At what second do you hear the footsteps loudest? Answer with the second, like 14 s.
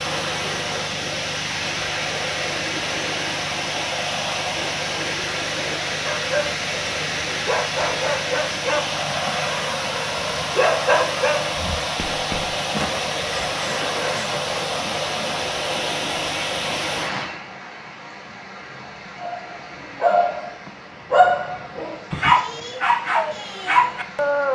13 s.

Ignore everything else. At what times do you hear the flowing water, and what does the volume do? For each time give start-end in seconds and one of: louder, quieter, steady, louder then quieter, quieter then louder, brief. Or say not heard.
0.0-24.5 quieter.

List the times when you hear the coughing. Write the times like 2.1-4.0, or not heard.
13.2-14.3.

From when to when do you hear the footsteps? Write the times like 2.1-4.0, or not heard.
11.6-13.1.